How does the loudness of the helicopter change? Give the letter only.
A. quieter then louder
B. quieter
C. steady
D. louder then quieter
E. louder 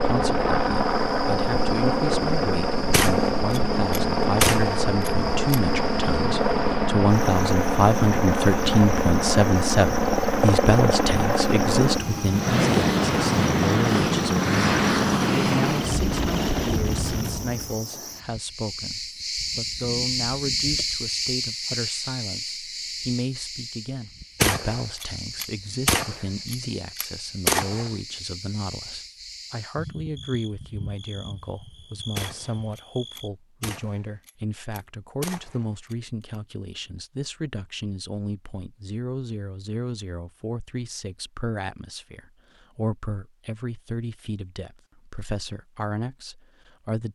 C.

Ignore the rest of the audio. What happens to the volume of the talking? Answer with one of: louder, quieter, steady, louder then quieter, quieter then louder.
quieter.